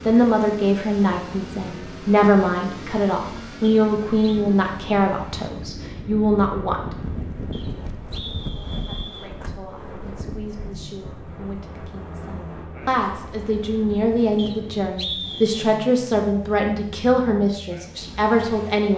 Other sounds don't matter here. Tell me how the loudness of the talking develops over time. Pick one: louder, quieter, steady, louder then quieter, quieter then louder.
quieter then louder.